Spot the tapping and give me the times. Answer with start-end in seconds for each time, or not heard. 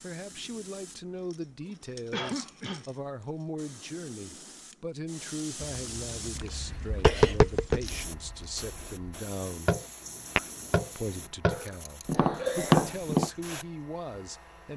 6.3-10.8, 11.4-13.3.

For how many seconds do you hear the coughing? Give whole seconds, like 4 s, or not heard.
4 s.